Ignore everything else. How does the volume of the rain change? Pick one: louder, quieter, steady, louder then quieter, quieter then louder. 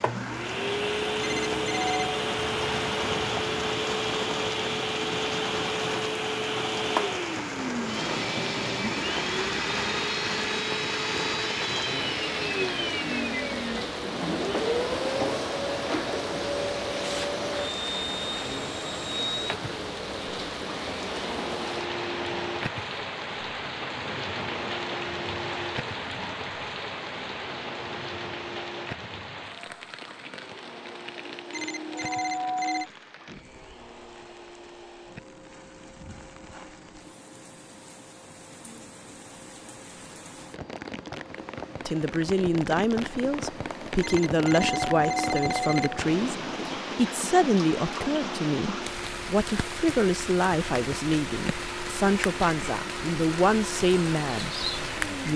quieter then louder.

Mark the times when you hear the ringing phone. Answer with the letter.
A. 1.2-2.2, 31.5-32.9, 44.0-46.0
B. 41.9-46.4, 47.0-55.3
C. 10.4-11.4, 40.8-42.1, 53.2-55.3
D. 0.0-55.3
A.